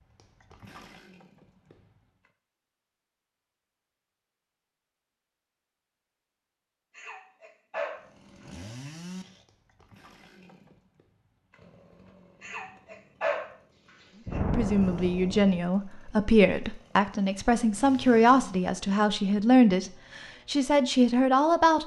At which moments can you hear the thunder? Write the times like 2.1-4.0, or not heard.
14.2-15.6.